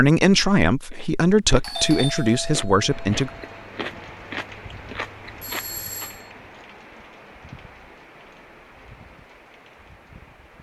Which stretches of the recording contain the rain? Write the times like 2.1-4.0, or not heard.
2.9-10.5.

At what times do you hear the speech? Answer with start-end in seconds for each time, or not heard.
0.0-3.3.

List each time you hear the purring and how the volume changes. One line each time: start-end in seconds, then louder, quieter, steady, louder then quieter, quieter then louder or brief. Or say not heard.
not heard.